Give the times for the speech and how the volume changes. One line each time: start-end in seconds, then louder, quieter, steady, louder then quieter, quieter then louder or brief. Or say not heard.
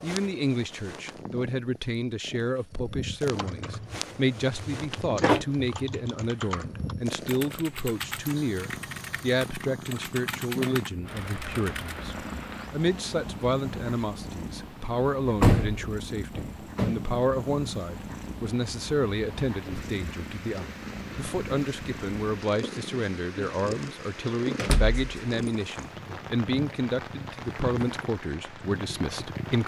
0.0-29.6 steady.